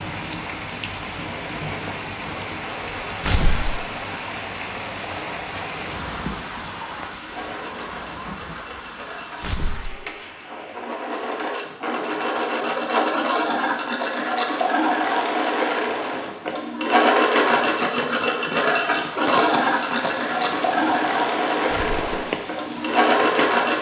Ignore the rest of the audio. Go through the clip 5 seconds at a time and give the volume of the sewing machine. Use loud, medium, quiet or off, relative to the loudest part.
quiet, quiet, loud, loud, loud.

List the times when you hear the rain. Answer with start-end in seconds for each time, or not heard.
0.0-23.7.